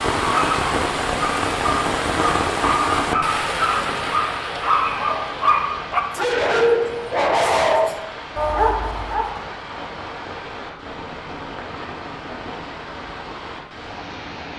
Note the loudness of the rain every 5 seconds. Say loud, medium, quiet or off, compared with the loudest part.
loud, medium, medium.